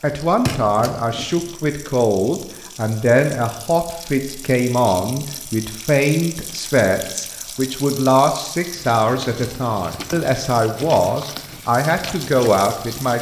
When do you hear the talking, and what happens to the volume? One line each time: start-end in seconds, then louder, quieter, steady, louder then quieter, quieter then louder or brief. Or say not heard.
0.0-13.1 steady.